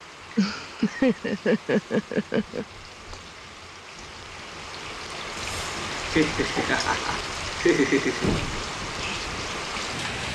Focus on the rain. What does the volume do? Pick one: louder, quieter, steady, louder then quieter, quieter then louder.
louder.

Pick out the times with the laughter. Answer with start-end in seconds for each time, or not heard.
0.3-2.6, 6.1-8.3.